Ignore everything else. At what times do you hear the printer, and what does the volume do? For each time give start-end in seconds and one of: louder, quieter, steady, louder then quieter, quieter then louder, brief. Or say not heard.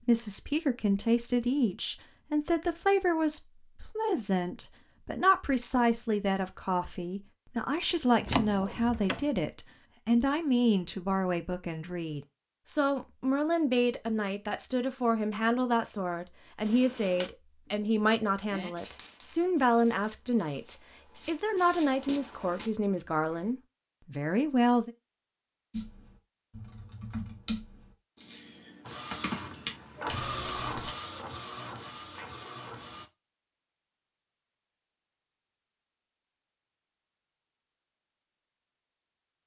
28.8-33.1 louder then quieter.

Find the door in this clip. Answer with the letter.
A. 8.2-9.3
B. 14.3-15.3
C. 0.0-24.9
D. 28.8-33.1
A.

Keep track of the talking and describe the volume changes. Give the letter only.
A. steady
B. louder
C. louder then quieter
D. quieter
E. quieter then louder
A.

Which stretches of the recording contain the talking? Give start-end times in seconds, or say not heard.
0.0-24.9.